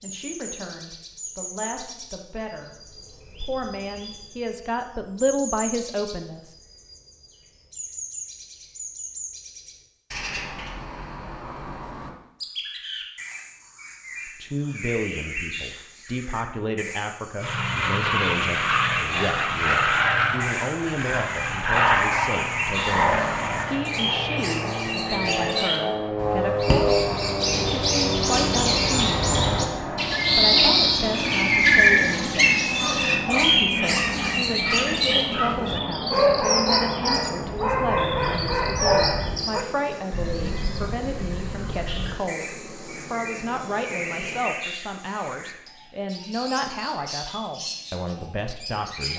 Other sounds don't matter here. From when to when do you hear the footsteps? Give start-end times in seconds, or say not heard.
not heard.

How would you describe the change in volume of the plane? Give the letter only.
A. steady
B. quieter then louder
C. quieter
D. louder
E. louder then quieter
C.